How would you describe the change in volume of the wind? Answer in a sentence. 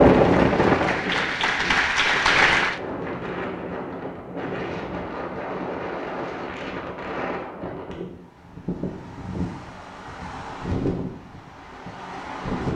The volume of the wind goes down.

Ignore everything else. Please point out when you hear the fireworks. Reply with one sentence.
The fireworks can't be heard in this clip.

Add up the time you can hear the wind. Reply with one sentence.
The wind can be heard for 13 seconds in total.